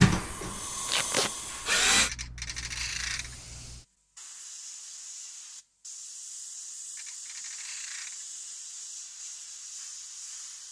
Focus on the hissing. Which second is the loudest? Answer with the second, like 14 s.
1 s.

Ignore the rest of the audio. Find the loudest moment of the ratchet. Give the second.
3 s.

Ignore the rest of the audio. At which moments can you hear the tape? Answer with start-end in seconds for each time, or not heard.
0.8-1.3.